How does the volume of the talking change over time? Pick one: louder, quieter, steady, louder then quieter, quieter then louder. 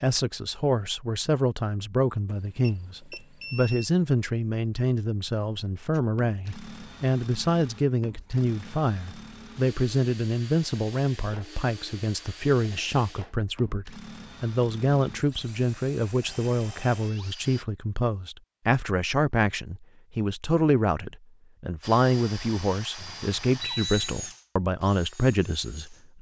steady.